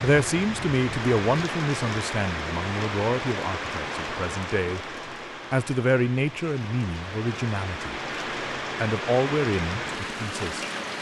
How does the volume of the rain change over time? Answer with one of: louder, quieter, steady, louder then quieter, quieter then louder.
quieter then louder.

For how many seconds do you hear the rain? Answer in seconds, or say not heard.
11 s.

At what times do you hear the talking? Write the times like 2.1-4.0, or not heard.
0.0-4.8, 5.5-8.0, 8.8-10.7.